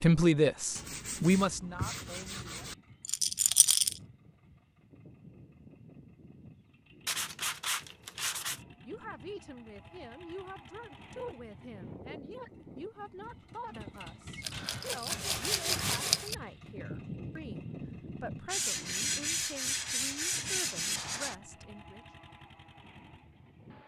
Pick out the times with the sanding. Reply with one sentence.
You can hear the sanding from 0.8 to 2.8 s, from 7.0 to 8.6 s, from 14.5 to 16.3 s and from 18.4 to 21.4 s.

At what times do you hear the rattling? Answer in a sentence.
The rattling can be heard from 3.0 to 4.0 s and from 14.4 to 16.4 s.